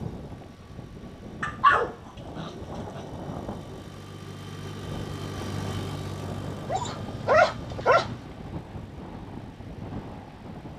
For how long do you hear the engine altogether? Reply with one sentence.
You can hear the engine for 11 seconds altogether.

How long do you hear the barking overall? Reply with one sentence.
You can hear the barking for 3 seconds altogether.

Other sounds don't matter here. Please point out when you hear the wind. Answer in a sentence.
You can hear the wind from 0.0 to 10.7 s.